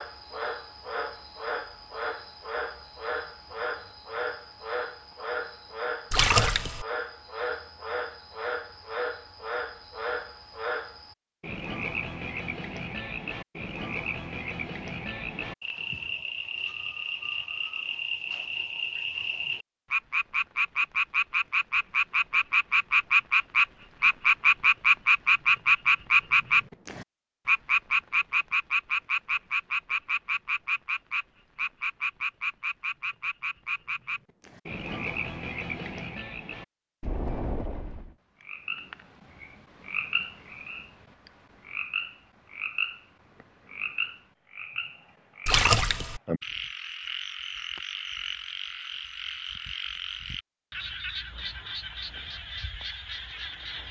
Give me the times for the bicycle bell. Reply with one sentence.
You can't hear the bicycle bell here.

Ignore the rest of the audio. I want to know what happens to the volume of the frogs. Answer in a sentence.
The volume of the frogs goes up, then down.